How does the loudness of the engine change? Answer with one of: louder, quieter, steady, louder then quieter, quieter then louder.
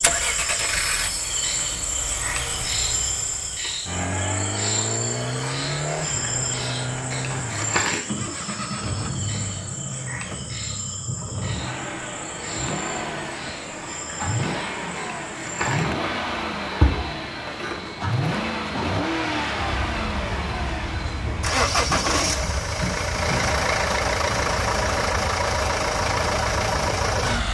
louder.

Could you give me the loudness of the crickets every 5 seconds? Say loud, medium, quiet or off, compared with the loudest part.
loud, loud, medium, loud, medium, medium.